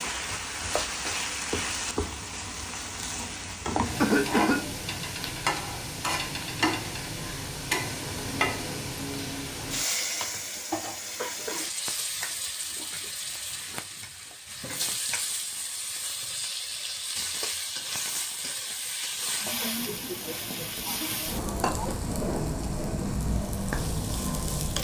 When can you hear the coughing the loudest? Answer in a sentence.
The loudest moment of the coughing is at 4 seconds.